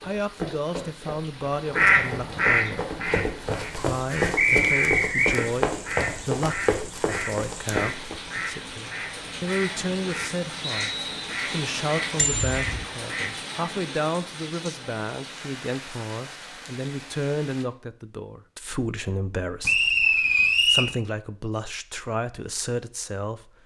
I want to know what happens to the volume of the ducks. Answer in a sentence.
The loudness of the ducks goes down.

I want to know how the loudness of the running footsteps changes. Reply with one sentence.
The loudness of the running footsteps goes up.